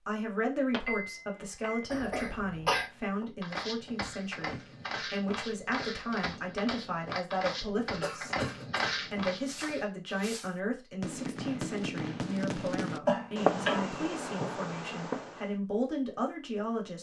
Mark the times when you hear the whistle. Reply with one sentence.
The whistle can't be heard in this clip.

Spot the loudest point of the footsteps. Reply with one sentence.
The loudest moment of the footsteps is at 9 seconds.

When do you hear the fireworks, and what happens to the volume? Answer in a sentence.
You can hear the fireworks from 9.3 to 15.6 s, getting louder then quieter.